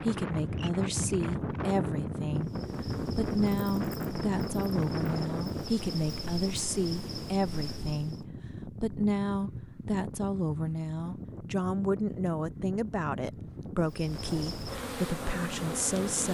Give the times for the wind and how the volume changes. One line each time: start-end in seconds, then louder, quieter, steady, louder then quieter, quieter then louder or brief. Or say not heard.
0.0-16.2 quieter.